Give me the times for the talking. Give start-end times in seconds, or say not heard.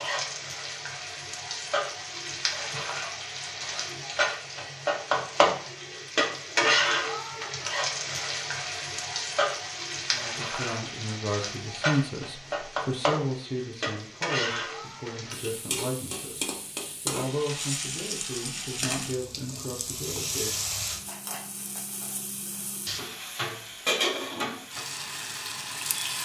10.1-16.4, 17.1-20.6.